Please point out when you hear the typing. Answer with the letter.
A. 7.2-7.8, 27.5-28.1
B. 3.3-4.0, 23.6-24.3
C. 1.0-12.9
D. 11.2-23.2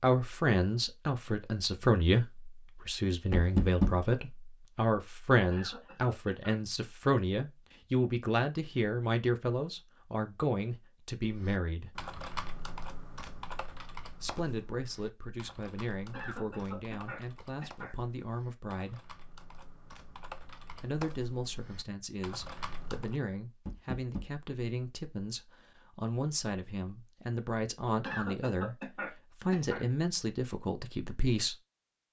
D.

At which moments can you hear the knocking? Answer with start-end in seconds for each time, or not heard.
3.3-4.0, 23.6-24.3.